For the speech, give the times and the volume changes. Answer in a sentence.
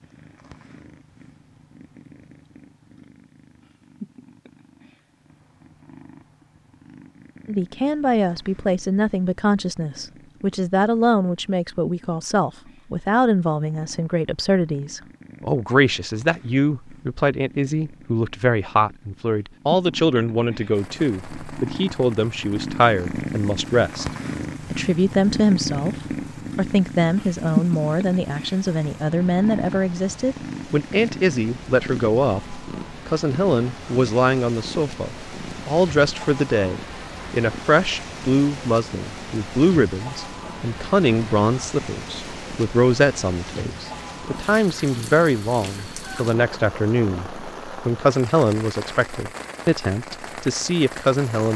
You can hear the speech from 7.5 to 24.1 s, at a steady volume; briefly from 24.7 to 25.9 s; and from 26.6 to 51.5 s, at a steady volume.